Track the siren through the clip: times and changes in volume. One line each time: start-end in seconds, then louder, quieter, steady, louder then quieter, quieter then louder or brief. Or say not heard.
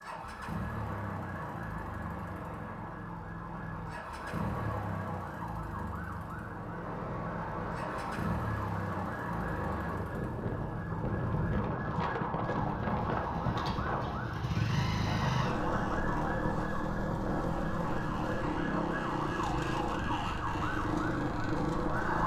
0.0-22.2 louder.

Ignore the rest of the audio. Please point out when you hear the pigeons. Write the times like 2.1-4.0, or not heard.
not heard.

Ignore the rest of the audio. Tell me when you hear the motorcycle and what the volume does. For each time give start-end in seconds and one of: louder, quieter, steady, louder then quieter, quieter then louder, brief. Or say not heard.
0.0-22.2 louder.